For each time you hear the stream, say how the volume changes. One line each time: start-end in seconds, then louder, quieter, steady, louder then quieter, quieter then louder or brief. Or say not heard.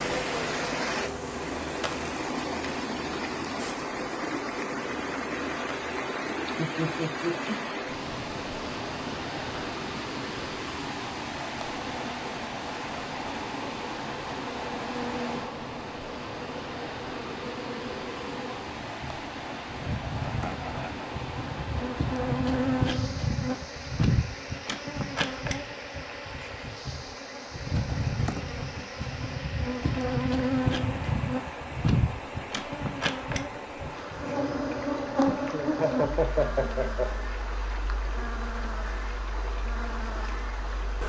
0.0-41.0 quieter.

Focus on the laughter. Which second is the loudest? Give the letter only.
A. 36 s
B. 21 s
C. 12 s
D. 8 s
A.